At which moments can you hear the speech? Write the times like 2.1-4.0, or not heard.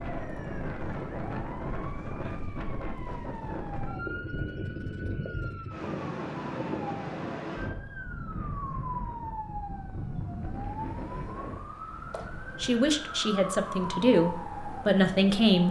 12.3-15.6.